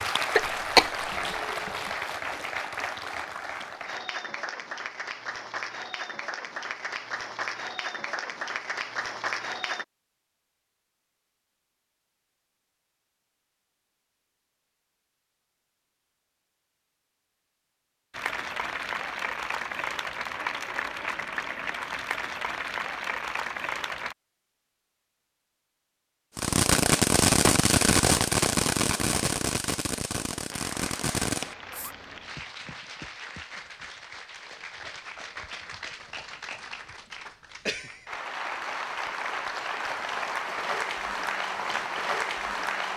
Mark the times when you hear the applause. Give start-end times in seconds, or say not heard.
0.0-9.8, 18.1-24.1, 30.5-42.9.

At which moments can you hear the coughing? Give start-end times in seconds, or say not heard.
0.3-1.9.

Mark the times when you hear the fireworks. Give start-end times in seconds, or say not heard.
26.4-31.9.